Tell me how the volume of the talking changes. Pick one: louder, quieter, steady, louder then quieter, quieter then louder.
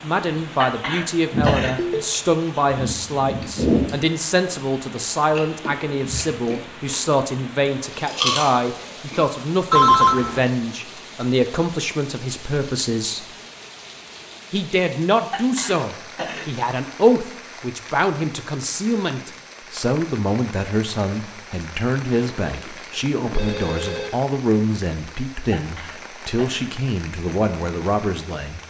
steady.